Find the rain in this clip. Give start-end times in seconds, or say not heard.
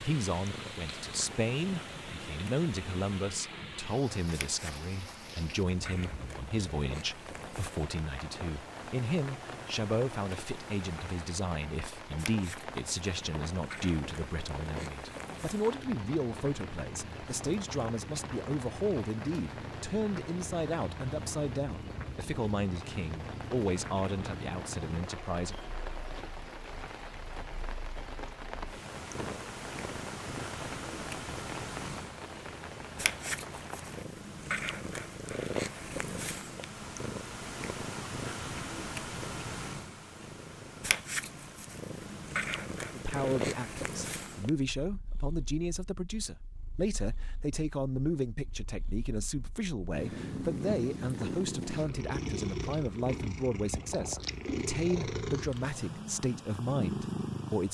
0.0-34.0.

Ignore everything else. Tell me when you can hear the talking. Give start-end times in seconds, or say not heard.
0.0-25.6, 42.9-57.6.